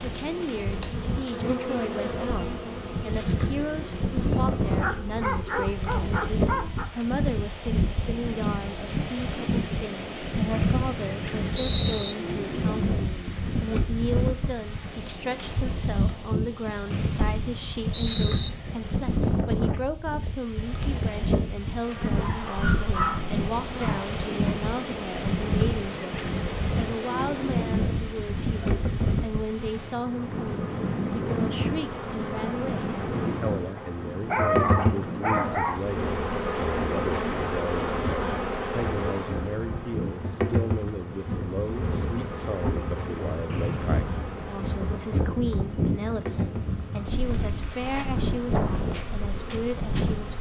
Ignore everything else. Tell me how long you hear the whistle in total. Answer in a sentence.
You can hear the whistle for 4 seconds altogether.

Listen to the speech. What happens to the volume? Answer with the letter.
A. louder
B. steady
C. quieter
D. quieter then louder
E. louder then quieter
B.